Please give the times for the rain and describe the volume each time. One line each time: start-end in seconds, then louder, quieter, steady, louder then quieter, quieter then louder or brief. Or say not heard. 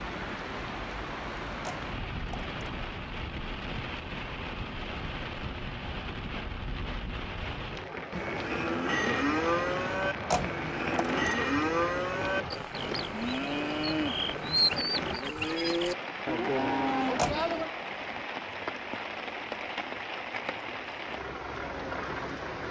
0.0-22.6 steady.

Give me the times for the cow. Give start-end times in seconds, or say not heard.
8.1-17.7.